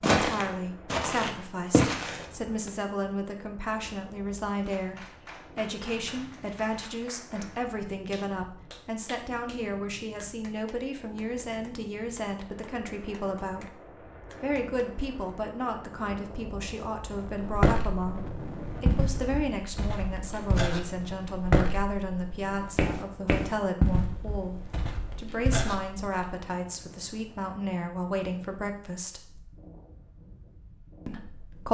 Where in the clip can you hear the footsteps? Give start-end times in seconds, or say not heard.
0.0-2.7, 17.4-26.3.